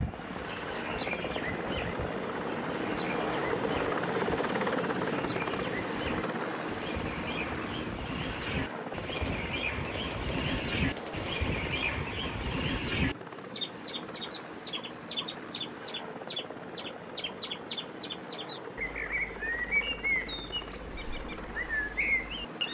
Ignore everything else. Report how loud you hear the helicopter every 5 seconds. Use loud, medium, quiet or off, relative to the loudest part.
loud, loud, medium, medium, medium.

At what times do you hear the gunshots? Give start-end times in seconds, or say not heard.
9.2-12.0.